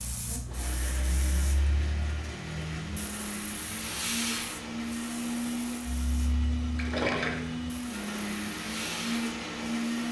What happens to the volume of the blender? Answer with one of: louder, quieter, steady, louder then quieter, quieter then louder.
louder.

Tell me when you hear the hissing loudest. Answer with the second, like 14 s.
4 s.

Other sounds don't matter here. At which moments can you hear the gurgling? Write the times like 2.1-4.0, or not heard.
6.8-7.4.